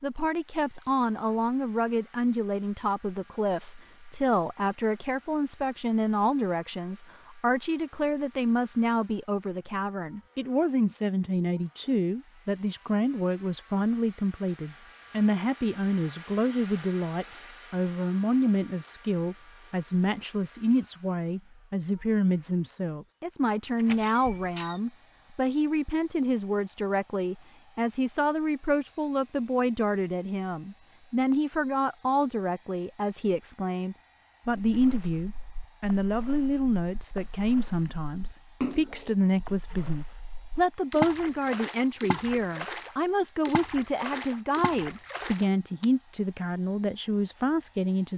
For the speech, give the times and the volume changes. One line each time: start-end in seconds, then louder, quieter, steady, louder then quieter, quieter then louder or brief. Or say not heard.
0.0-48.1 steady.